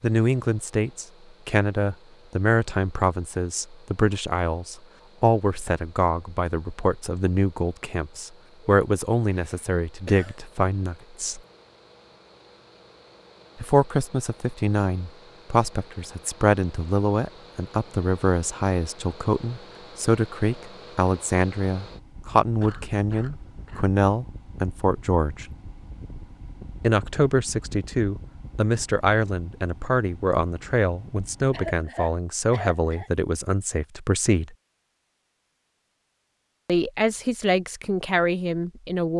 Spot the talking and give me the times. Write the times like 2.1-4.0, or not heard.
0.0-11.4, 13.6-25.4, 26.8-34.5, 36.6-39.1.